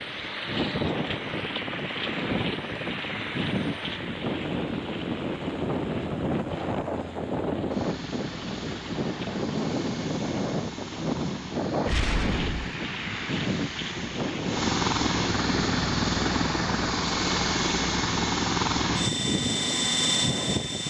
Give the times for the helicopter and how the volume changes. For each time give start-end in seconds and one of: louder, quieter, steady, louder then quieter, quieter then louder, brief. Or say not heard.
0.0-20.8 louder.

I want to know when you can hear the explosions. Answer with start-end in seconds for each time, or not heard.
11.8-12.7.